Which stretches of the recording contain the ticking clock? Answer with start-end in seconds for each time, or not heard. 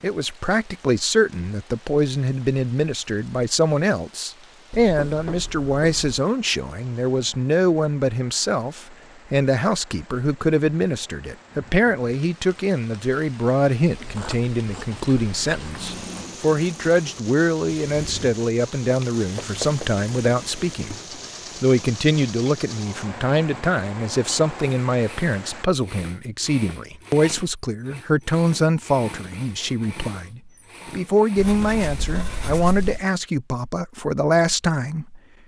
not heard.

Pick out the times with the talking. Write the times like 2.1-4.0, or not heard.
0.0-20.9, 21.6-35.2.